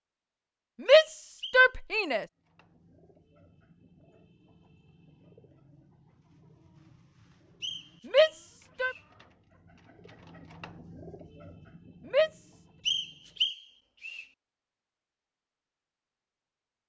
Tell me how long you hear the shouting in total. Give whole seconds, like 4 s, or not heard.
3 s.